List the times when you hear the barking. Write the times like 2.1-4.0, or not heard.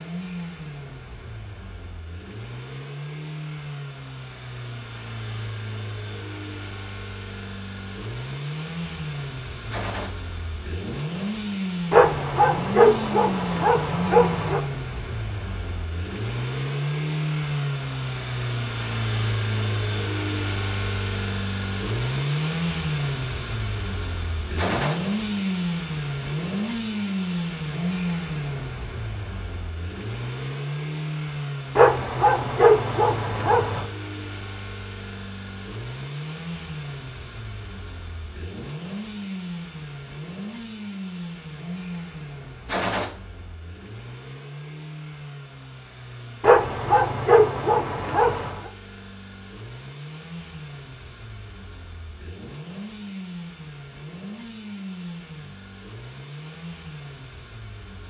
11.9-14.6, 31.8-33.9, 46.4-48.7.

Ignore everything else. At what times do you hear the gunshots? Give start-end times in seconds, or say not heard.
9.7-10.1, 24.6-25.0, 42.6-43.1.